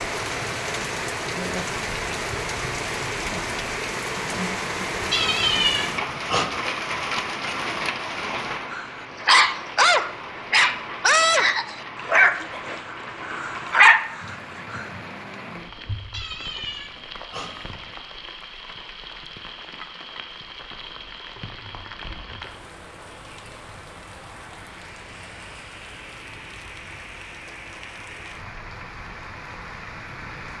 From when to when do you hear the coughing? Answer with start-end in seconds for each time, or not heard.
not heard.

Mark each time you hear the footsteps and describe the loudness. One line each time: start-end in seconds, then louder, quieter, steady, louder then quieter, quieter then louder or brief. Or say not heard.
not heard.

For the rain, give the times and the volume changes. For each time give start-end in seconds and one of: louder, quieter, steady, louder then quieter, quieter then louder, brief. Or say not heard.
0.0-30.5 quieter.